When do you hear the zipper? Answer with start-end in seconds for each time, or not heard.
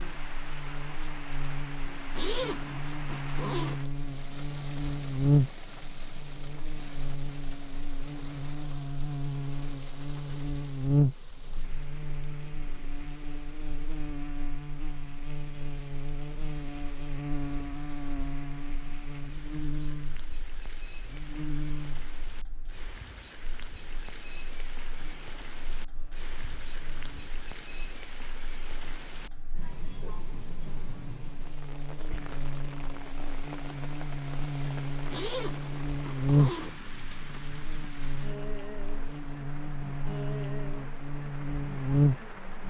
2.1-3.9, 35.1-36.8.